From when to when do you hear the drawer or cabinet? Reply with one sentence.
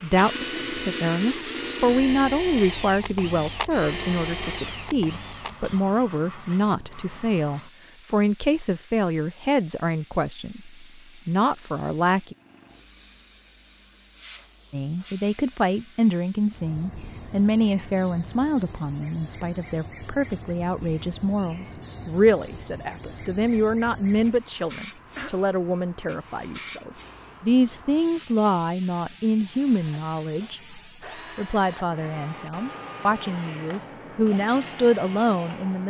You can't hear the drawer or cabinet here.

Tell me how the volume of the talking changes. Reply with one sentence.
The volume of the talking stays about the same.